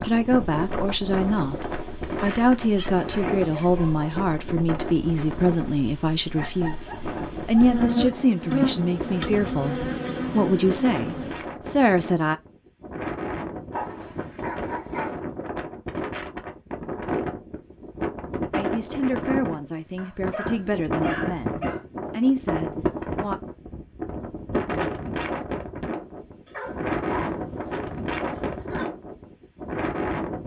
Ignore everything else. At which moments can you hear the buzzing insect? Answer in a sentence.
You can hear the buzzing insect from 0.2 to 11.3 s.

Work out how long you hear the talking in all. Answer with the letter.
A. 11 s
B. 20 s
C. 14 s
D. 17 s
D.